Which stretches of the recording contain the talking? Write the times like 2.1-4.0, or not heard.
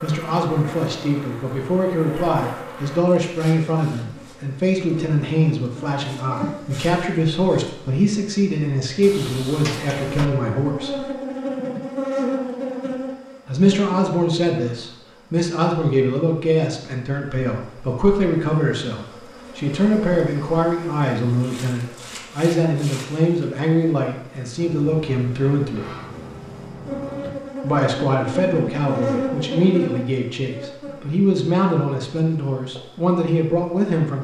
0.0-11.1, 13.4-25.9, 27.6-34.2.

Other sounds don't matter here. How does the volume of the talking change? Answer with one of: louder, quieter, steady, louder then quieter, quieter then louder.
steady.